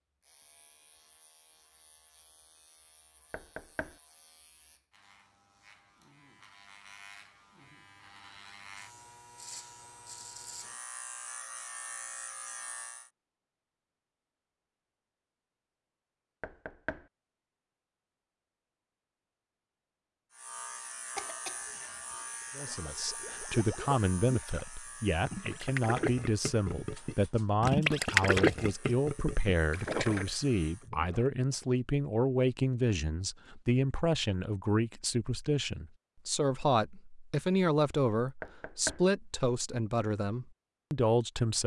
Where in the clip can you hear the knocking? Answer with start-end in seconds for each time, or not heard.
3.3-4.0, 16.4-17.1, 38.4-39.0.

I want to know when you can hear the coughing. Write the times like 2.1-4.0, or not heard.
21.1-22.8.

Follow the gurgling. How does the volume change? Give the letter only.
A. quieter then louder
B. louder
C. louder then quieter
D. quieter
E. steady
C.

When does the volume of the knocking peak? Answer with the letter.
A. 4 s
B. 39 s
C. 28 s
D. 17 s
B.